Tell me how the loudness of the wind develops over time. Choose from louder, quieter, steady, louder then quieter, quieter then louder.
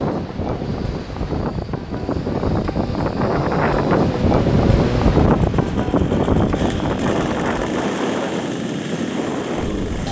louder then quieter.